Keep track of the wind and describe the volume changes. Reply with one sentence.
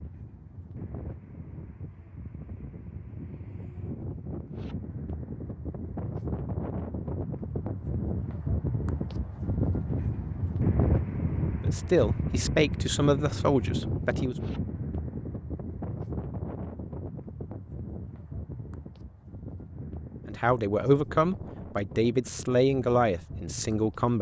The loudness of the wind goes up, then down.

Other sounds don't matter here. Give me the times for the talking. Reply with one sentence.
You can hear the talking from 11.6 to 14.3 s and from 20.2 to 24.1 s.